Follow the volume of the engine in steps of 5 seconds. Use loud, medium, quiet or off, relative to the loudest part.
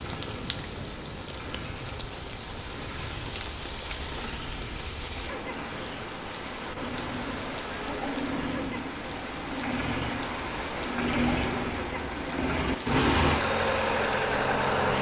quiet, medium, loud.